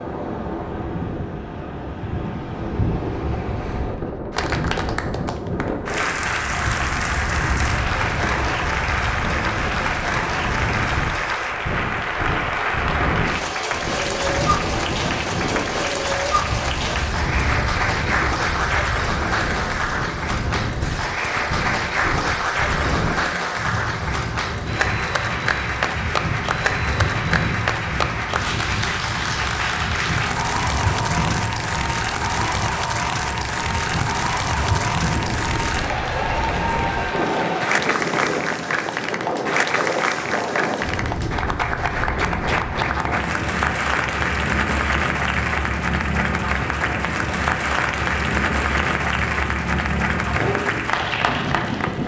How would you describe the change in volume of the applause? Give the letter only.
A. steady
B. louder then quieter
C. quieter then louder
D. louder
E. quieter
A.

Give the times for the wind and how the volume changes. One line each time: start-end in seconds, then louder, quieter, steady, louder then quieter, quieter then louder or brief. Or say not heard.
0.0-52.0 steady.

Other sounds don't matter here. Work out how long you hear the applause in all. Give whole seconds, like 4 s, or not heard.
48 s.